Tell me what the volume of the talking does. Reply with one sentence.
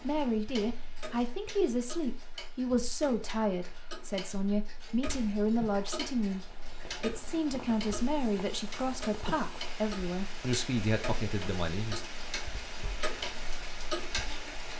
The loudness of the talking stays about the same.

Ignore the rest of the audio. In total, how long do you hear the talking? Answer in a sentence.
The talking can be heard for 12 seconds in total.